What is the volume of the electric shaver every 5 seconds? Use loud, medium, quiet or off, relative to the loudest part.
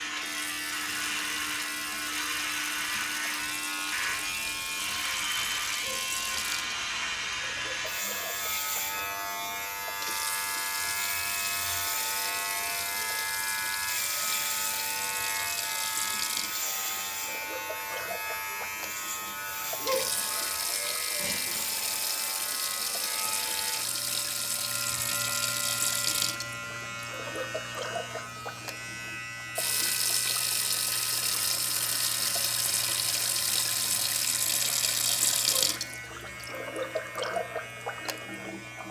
loud, loud, loud, loud, medium, medium, medium, medium.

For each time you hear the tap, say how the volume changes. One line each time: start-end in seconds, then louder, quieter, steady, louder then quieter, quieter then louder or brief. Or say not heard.
0.0-38.8 louder.